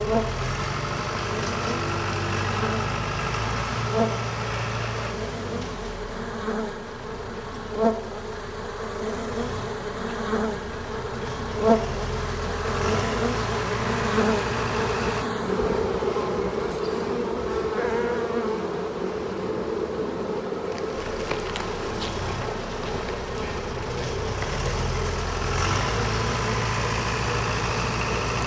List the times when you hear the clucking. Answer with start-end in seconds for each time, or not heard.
not heard.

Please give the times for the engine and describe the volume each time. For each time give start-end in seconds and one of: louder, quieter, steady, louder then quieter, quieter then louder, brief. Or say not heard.
0.0-15.2 quieter then louder
20.9-28.4 louder.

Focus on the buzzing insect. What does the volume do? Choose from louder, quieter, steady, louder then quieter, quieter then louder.
louder then quieter.